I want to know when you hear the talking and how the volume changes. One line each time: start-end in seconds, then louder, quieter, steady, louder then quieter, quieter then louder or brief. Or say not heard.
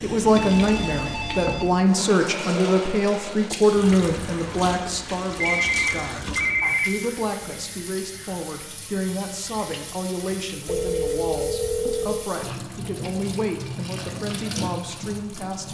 0.0-15.6 quieter.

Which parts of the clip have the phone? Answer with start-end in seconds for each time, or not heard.
0.3-1.7, 5.4-7.0, 10.7-12.2.